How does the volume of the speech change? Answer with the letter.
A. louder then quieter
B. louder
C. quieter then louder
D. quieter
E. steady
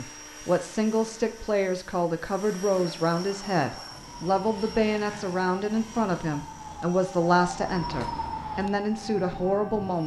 E.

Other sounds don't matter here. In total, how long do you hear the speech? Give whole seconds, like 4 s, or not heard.
10 s.